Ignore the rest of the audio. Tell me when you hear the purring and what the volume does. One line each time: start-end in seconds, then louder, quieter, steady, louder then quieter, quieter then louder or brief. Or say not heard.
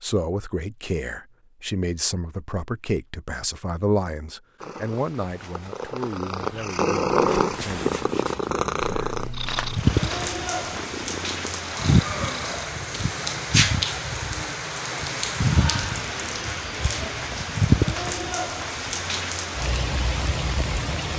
4.6-12.8 louder then quieter.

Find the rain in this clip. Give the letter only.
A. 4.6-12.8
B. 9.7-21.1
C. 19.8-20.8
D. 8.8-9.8
B.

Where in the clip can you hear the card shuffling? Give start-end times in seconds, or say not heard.
8.8-9.8.